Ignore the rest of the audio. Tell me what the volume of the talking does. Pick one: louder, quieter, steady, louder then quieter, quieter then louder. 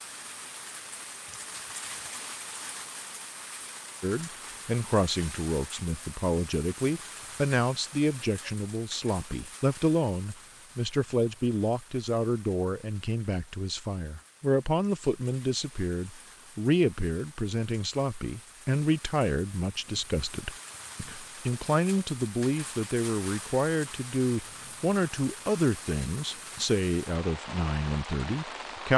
steady.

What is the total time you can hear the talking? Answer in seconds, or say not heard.
25 s.